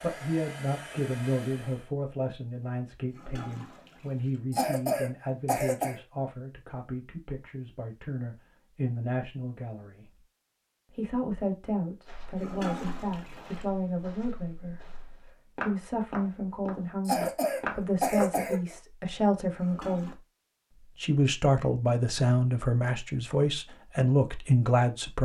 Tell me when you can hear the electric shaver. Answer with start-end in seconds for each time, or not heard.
not heard.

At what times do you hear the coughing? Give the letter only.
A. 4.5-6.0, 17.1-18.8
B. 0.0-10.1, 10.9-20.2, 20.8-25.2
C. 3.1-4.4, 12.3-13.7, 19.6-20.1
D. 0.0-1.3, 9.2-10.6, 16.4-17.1
A.